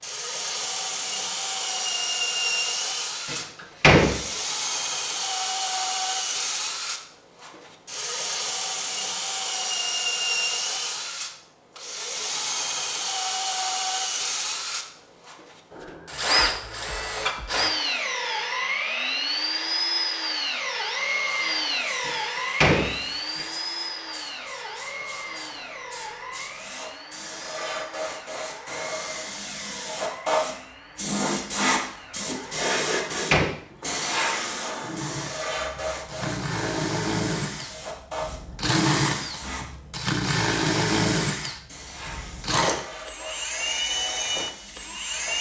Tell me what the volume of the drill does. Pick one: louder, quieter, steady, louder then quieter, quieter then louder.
quieter then louder.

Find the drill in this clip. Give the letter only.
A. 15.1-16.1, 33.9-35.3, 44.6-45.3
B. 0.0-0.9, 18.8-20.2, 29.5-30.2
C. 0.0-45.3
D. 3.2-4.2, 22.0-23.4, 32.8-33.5
C.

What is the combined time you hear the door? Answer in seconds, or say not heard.
3 s.